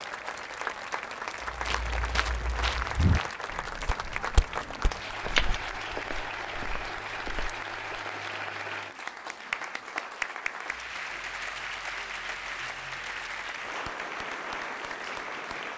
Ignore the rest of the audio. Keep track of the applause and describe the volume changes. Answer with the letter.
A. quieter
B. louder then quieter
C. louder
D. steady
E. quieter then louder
D.